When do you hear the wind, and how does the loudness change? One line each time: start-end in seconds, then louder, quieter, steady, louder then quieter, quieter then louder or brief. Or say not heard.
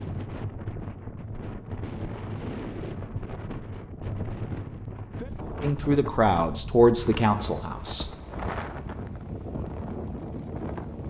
0.0-11.0 steady.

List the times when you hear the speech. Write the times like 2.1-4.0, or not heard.
5.6-8.1.